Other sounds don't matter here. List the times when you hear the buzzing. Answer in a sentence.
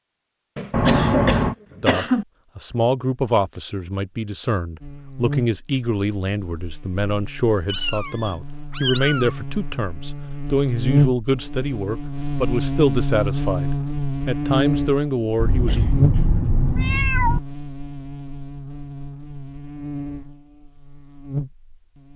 You can hear the buzzing from 4.8 to 22.1 s.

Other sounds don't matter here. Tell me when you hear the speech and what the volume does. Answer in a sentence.
The speech can be heard from 1.8 to 15.8 s, at a steady volume.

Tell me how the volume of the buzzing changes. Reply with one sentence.
The loudness of the buzzing goes up, then down.